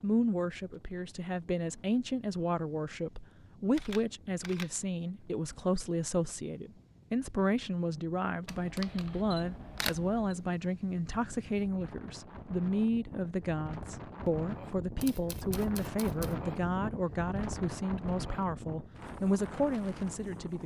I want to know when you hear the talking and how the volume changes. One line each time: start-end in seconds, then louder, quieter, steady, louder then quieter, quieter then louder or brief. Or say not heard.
0.0-20.6 steady.